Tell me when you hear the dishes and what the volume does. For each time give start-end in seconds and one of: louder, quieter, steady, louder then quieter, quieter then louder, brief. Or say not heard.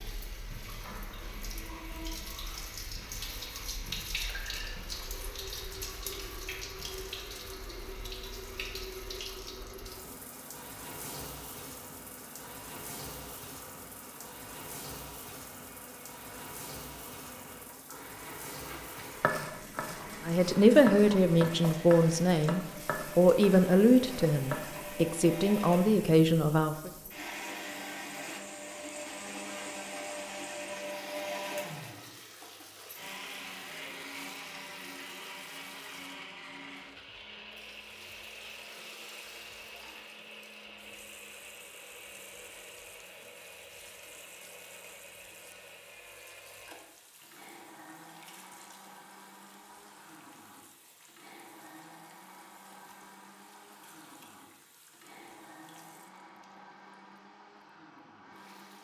not heard.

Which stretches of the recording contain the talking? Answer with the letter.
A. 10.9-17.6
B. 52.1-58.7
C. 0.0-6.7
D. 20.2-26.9
D.